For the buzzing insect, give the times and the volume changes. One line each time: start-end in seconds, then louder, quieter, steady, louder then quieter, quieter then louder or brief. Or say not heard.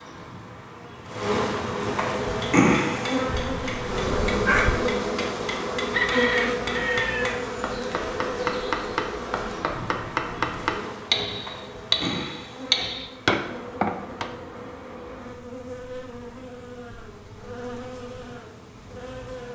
0.0-19.4 quieter.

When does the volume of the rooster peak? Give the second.
6 s.